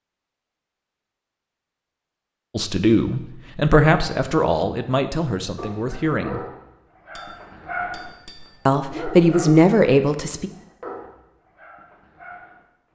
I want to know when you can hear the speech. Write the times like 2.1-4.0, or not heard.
2.5-6.5, 8.7-10.5.